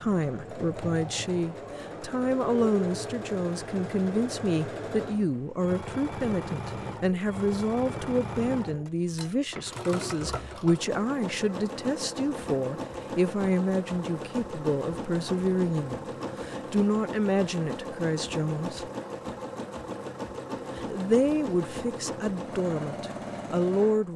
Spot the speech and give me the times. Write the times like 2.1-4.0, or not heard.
0.0-18.9, 20.8-24.1.